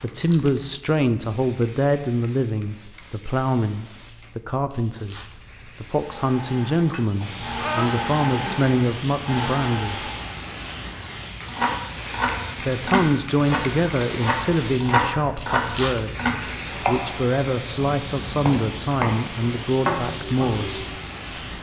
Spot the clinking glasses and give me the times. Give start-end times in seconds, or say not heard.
6.8-7.9.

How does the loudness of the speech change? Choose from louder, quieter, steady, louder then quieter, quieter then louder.
steady.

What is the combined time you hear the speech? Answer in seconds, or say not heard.
18 s.